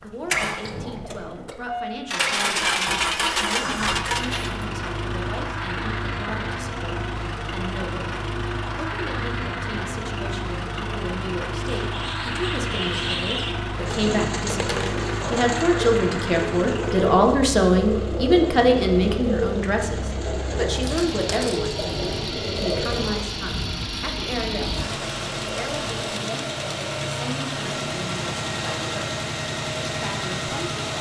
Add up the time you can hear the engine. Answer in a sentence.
The engine can be heard for 31 seconds in total.